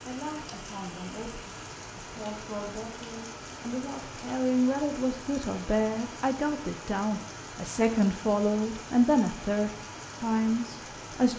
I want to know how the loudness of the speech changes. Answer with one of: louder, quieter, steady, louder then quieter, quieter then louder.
louder.